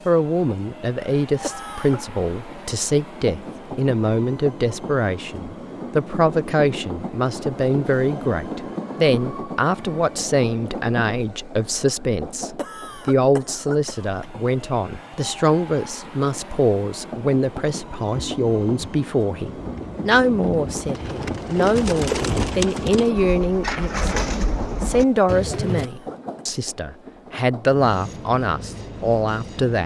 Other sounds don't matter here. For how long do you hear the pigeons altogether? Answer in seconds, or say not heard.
8 s.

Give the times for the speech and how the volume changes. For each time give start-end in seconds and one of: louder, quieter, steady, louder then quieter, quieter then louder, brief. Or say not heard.
0.1-29.8 steady.